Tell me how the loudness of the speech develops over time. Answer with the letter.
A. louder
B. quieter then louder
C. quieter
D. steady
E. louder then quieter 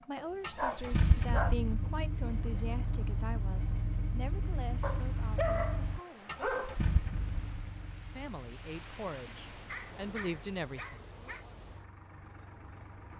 B.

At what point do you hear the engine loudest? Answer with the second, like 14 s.
1 s.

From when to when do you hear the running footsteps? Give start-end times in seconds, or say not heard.
not heard.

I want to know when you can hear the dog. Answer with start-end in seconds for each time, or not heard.
0.1-1.6, 4.8-6.8, 9.7-11.4.